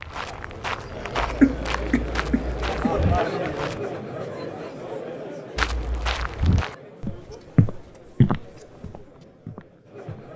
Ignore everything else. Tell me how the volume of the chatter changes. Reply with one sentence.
The volume of the chatter goes up, then down.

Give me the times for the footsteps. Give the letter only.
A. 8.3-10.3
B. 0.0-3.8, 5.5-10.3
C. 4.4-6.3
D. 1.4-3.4
B.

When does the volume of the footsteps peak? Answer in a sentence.
The loudest moment of the footsteps is at 8 seconds.